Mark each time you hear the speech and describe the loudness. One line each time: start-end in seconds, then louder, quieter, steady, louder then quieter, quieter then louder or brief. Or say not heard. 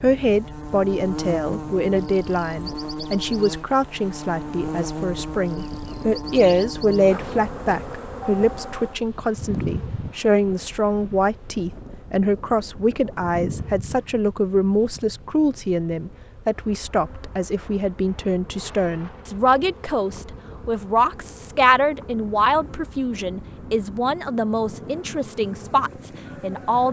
0.0-26.8 steady.